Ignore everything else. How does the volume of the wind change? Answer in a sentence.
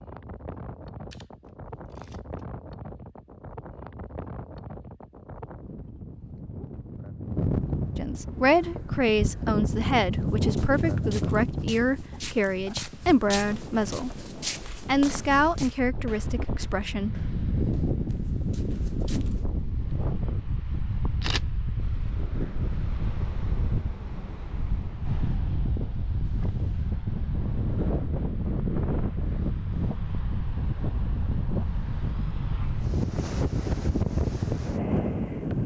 The loudness of the wind goes up.